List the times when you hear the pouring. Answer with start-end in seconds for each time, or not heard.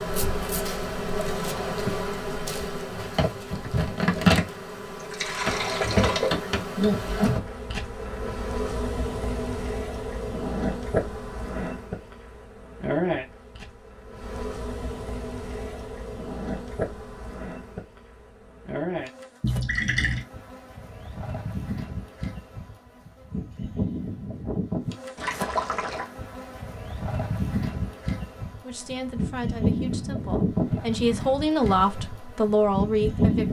5.0-6.5, 19.4-20.2, 25.1-26.1.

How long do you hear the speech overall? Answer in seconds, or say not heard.
5 s.